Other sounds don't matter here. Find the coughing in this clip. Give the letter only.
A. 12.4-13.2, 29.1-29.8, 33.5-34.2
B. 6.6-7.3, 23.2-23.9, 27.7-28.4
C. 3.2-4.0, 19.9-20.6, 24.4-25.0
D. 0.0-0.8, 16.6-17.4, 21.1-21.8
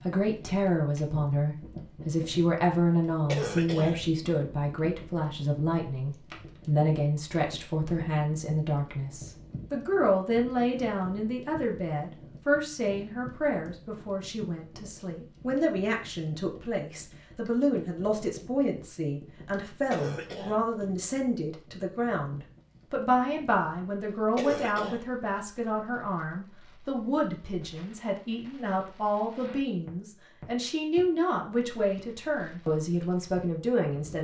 C.